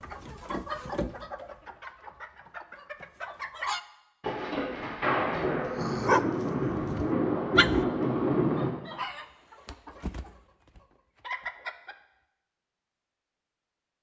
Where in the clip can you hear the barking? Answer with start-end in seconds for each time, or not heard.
5.3-7.8.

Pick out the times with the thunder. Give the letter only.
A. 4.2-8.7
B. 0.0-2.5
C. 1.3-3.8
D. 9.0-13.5
A.